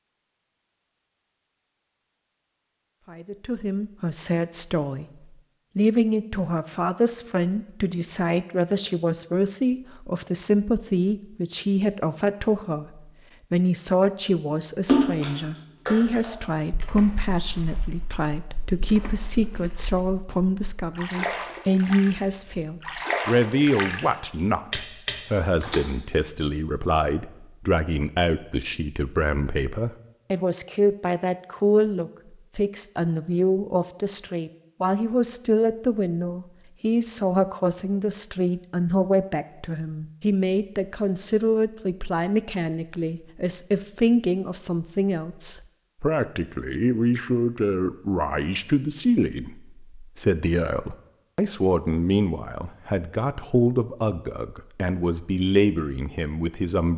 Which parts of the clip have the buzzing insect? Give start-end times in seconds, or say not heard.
not heard.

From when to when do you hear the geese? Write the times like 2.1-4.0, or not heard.
not heard.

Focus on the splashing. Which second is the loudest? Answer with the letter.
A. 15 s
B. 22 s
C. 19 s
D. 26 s
A.